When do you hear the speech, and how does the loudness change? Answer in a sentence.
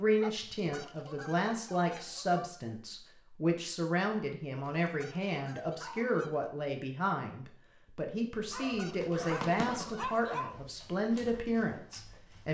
The speech can be heard from 0.0 to 12.4 s, at a steady volume.